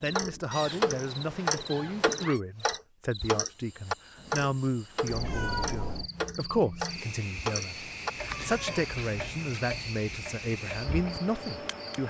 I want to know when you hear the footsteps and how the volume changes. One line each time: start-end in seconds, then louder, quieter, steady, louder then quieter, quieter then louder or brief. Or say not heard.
not heard.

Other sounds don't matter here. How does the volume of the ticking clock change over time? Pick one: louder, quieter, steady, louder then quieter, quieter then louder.
quieter.